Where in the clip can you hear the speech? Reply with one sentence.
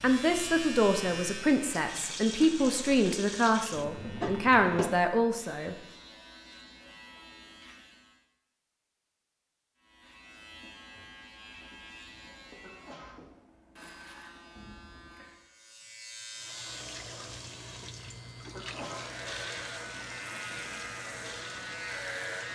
You can hear the speech from 0.0 to 5.8 s.